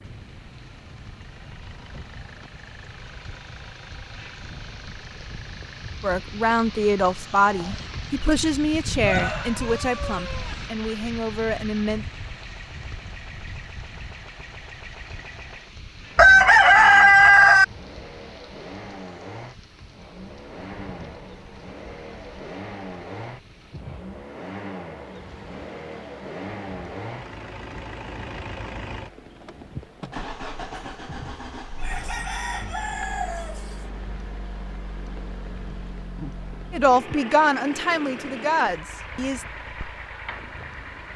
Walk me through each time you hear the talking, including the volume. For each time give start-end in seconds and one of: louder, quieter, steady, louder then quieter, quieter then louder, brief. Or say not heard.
6.0-12.1 quieter
36.7-39.5 brief.